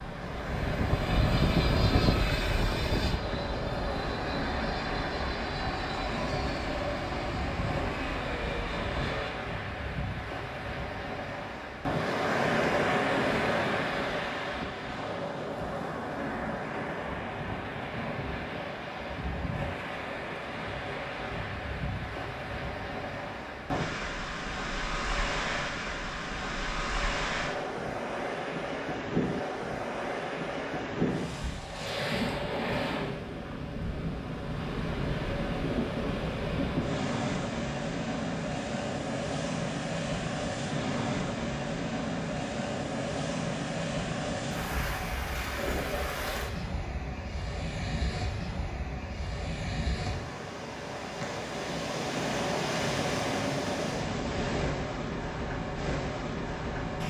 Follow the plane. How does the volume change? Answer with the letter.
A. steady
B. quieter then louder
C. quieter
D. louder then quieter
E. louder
C.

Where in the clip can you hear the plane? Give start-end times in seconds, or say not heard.
0.0-9.3.